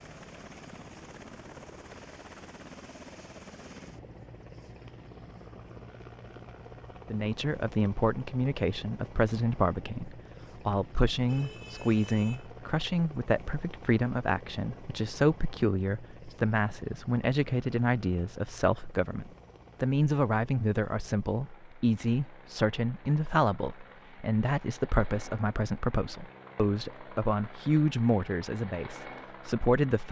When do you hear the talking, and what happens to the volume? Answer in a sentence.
The talking can be heard from 7.1 to 30.0 s, at a steady volume.